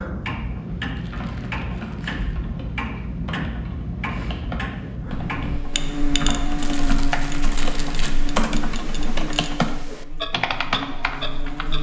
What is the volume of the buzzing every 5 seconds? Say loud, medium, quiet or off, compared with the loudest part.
off, loud, medium.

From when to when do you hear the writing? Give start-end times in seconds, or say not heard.
not heard.